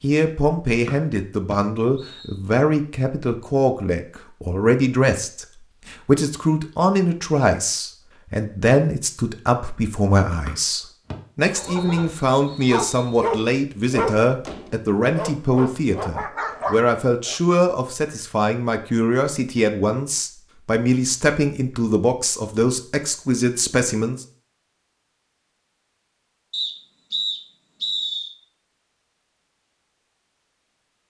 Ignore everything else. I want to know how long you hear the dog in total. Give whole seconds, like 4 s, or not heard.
6 s.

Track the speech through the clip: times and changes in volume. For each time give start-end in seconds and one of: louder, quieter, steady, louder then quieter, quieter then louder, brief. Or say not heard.
0.0-24.2 steady.